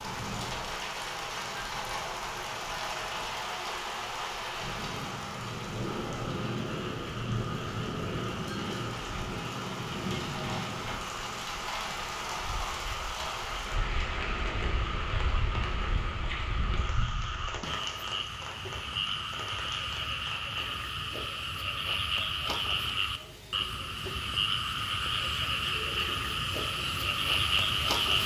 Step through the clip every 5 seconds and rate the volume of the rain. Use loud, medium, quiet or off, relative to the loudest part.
loud, loud, loud, medium, quiet, medium.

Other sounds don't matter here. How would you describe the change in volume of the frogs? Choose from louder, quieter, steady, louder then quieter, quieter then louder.
louder.